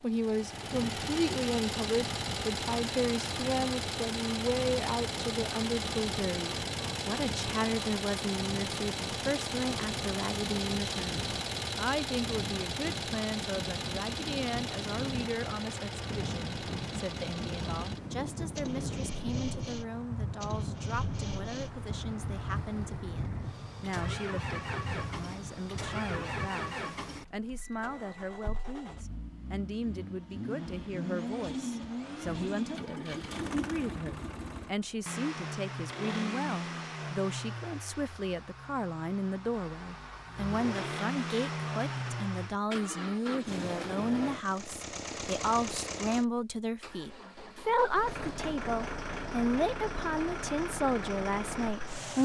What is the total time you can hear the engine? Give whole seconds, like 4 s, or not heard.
52 s.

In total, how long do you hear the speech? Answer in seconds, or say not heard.
52 s.